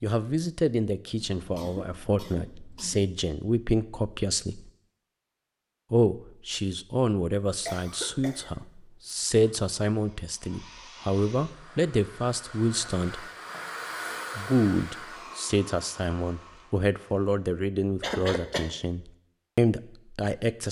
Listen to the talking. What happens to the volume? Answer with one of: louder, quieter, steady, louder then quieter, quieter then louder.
steady.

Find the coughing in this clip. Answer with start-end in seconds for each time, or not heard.
1.1-3.1, 7.7-9.6, 18.0-18.6.